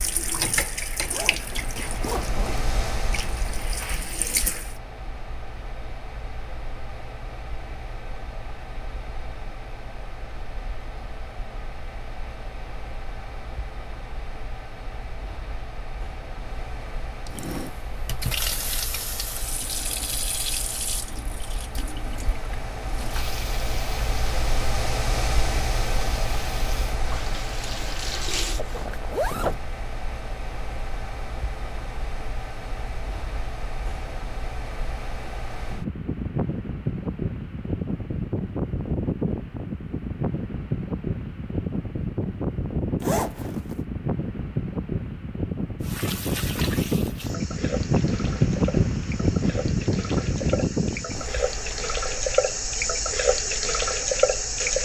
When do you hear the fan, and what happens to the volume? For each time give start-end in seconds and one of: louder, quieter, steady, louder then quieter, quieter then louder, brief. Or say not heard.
0.0-54.8 louder.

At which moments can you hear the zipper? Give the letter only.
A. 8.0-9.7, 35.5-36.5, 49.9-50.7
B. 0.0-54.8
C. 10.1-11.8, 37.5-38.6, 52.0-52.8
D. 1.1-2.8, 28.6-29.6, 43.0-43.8
D.